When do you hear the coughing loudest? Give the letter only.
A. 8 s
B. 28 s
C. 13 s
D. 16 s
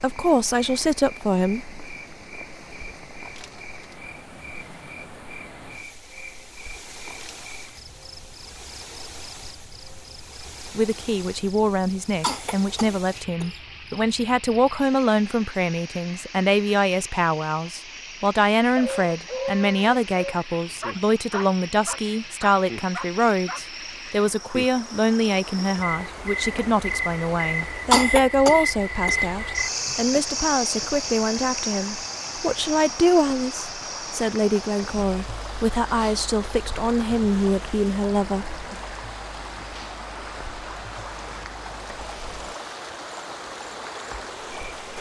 B.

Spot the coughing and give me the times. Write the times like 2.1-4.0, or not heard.
12.2-13.6, 27.9-29.2.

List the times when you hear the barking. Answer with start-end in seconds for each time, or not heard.
18.8-23.6.